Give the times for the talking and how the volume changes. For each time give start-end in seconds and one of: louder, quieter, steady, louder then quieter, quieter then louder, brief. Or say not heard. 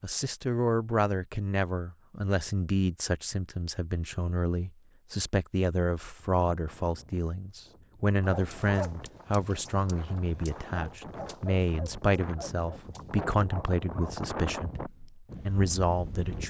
0.0-16.4 steady.